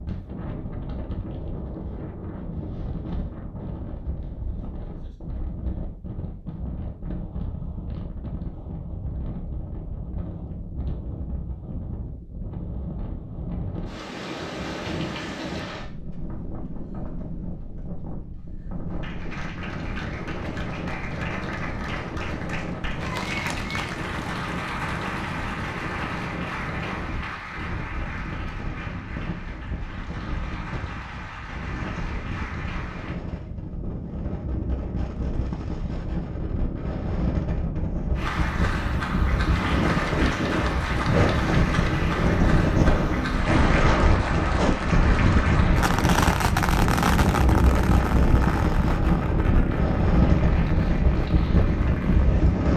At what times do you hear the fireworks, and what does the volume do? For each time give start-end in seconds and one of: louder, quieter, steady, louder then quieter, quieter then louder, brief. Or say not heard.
45.8-52.4 quieter.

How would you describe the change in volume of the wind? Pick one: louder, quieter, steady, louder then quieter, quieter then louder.
louder.